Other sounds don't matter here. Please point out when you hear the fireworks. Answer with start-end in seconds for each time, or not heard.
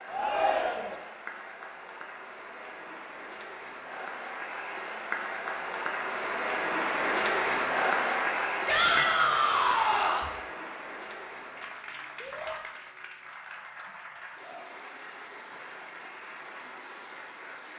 not heard.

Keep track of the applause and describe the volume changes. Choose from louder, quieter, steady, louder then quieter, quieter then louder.
louder then quieter.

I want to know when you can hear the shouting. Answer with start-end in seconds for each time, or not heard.
0.1-1.0, 8.7-10.3, 12.2-12.6.